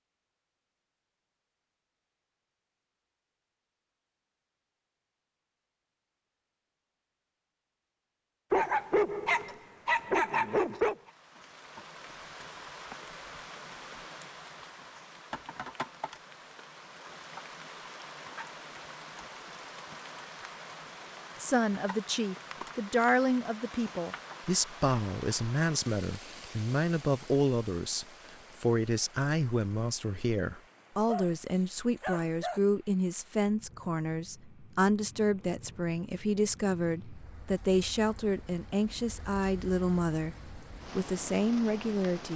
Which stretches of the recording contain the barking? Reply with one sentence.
You can hear the barking from 8.5 to 10.9 s and from 31.1 to 32.6 s.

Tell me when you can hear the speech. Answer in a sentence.
The speech can be heard from 21.4 to 42.3 s.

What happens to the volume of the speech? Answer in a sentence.
The volume of the speech stays about the same.